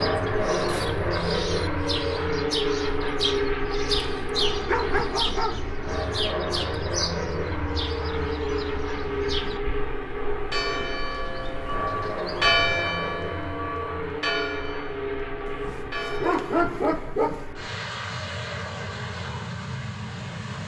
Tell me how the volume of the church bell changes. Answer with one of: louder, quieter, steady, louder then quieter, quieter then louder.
louder then quieter.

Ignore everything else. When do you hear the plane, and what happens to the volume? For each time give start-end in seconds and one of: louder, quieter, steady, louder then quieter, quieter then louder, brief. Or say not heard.
0.0-20.6 quieter.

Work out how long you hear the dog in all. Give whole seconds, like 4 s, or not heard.
4 s.